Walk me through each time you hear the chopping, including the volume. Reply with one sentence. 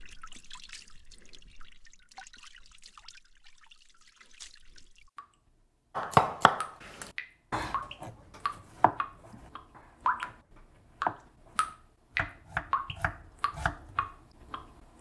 The chopping can be heard from 6.0 to 14.0 s, getting quieter then louder.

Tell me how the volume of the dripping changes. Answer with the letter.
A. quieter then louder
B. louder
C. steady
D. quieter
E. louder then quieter
B.